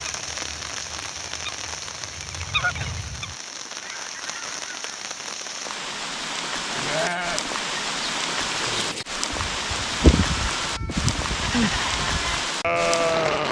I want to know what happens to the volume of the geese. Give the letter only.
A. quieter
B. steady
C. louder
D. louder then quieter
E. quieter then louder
D.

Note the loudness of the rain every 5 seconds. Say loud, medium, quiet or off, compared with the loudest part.
medium, loud, loud.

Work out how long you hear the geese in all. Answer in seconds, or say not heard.
5 s.